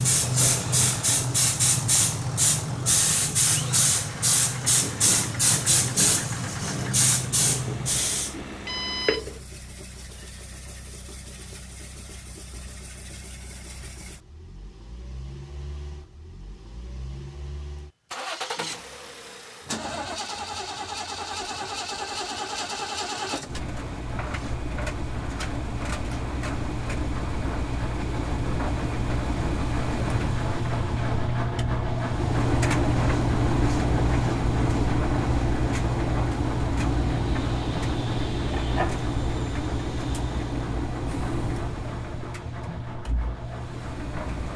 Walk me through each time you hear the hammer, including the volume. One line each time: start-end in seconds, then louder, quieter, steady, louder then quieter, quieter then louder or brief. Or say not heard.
not heard.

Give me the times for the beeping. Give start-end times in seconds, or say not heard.
7.7-9.4.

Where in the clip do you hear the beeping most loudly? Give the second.
9 s.